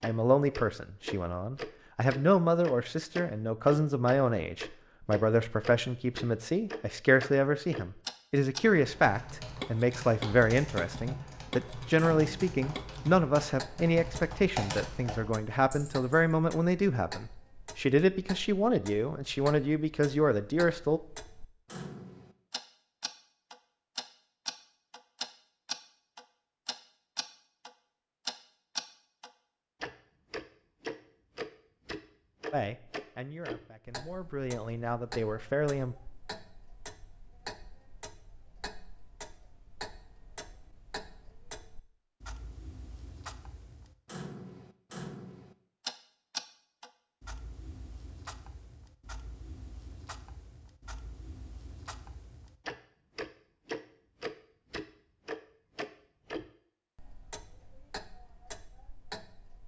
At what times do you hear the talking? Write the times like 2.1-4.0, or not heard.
0.0-21.0, 32.5-36.0.